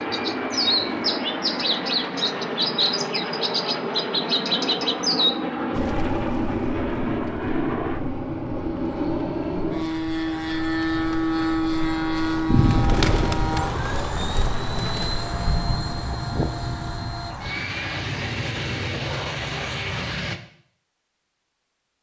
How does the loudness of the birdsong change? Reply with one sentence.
The volume of the birdsong goes down, then up.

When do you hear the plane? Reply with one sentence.
You can hear the plane from 0.0 to 20.4 s.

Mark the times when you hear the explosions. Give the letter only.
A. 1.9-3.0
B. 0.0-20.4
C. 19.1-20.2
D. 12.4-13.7
D.